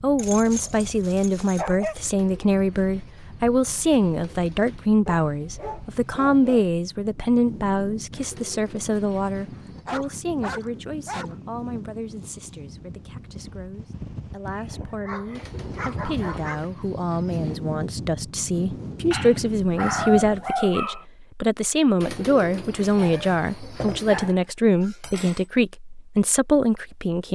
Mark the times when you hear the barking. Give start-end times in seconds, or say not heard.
0.1-1.9, 5.0-6.7, 9.6-11.3, 14.7-16.6, 19.1-21.1, 22.9-25.4.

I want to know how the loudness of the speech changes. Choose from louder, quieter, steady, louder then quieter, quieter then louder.
quieter then louder.